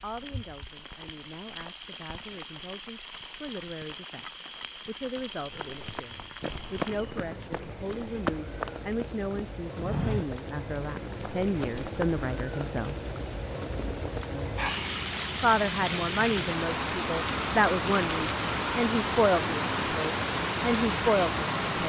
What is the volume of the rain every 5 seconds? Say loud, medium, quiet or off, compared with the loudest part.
quiet, quiet, medium, loud, loud.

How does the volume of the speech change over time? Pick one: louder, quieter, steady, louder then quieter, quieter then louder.
louder.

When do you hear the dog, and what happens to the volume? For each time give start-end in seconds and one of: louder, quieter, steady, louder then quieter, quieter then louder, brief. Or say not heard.
not heard.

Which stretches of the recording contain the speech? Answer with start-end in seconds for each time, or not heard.
0.0-12.9, 15.4-21.8.